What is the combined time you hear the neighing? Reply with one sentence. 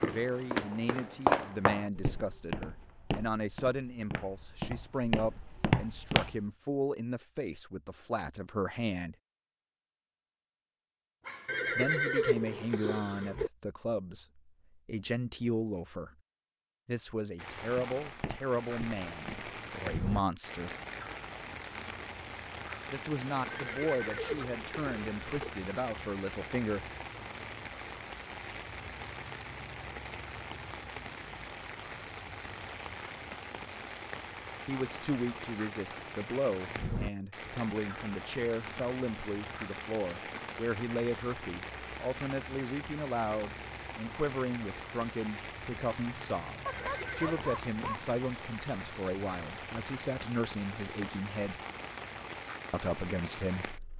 The neighing can be heard for 5 seconds in total.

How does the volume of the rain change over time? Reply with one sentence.
The volume of the rain stays about the same.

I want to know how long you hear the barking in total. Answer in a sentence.
You can hear the barking for 2 seconds altogether.